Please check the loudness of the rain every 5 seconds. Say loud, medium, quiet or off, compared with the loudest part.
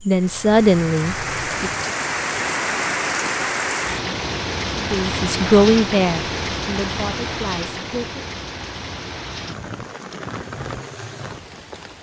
loud, loud, medium.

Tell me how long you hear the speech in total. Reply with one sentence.
The speech can be heard for 5 seconds in total.